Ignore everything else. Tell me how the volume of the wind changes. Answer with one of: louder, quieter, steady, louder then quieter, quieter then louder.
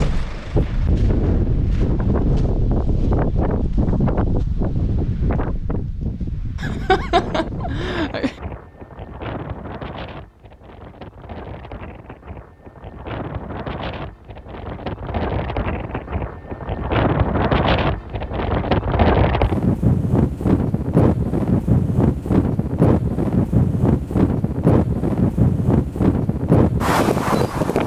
quieter then louder.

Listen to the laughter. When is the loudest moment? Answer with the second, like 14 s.
7 s.